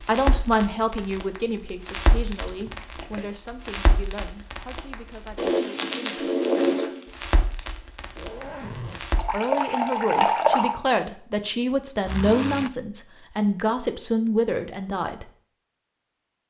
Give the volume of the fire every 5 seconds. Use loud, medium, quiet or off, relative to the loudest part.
medium, loud, off, off.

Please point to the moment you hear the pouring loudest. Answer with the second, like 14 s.
10 s.